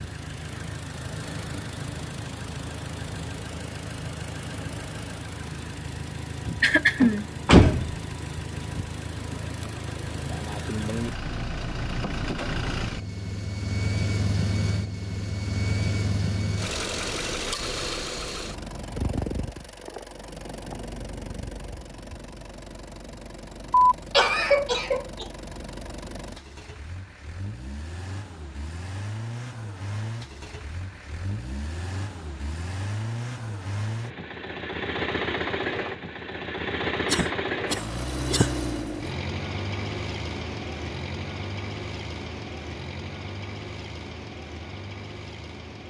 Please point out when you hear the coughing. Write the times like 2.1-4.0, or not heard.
6.6-7.2, 23.7-25.2, 37.0-38.5.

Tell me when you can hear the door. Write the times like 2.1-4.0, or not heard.
7.0-7.9.